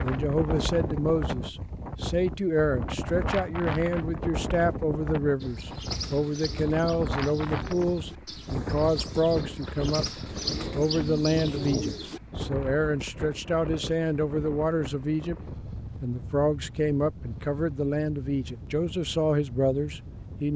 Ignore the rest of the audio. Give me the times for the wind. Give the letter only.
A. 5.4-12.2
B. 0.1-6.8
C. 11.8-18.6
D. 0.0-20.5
D.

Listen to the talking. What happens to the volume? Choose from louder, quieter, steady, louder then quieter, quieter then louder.
steady.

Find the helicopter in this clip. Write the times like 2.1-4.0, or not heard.
not heard.